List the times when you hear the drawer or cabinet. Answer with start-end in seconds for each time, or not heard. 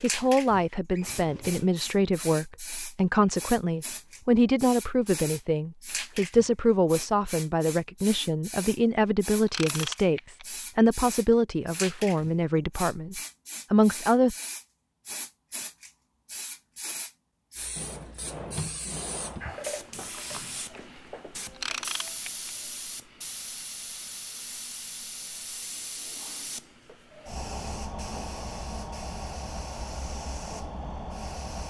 0.9-1.7, 17.8-19.6.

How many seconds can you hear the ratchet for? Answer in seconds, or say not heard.
2 s.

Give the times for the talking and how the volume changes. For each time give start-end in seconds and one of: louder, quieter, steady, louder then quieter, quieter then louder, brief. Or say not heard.
0.0-14.3 steady.